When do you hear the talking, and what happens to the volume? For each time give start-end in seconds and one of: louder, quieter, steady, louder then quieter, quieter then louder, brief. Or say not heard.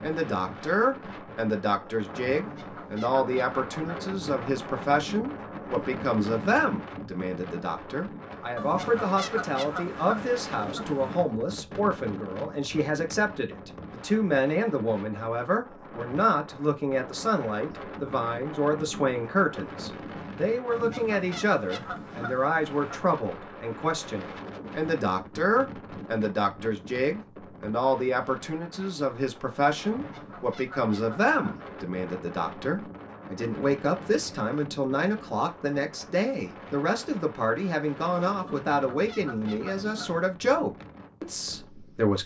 0.0-42.2 steady.